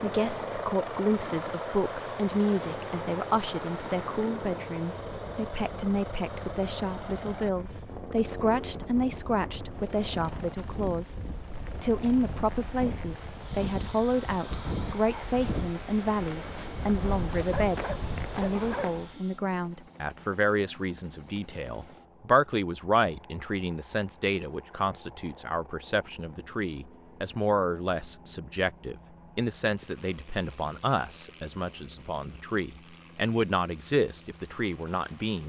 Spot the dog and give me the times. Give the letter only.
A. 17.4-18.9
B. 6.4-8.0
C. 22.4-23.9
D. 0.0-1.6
A.